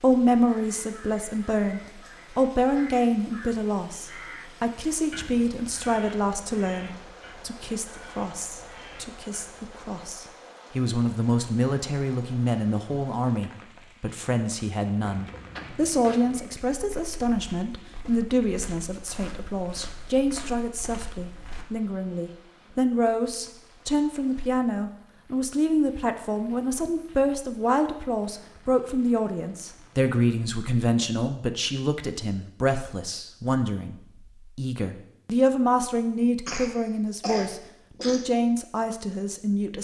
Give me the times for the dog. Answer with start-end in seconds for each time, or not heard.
not heard.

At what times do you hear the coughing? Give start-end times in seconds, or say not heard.
36.5-38.3.